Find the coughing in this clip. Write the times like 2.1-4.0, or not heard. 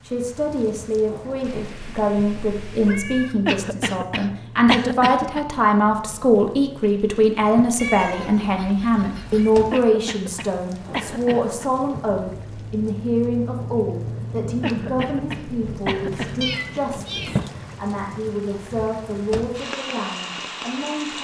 3.5-5.5, 9.7-11.7, 14.6-16.6.